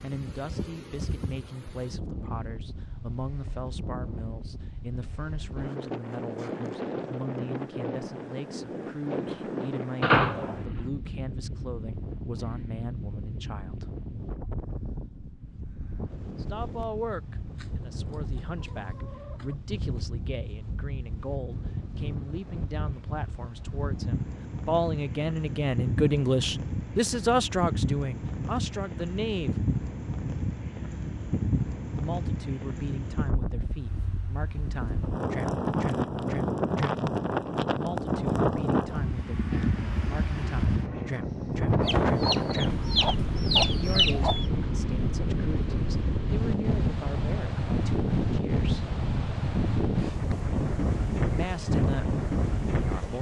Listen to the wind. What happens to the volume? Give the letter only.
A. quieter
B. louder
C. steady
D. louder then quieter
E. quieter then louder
B.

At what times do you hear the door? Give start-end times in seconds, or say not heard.
10.0-10.8.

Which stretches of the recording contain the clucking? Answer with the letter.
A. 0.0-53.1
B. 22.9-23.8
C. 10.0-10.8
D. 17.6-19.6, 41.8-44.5
D.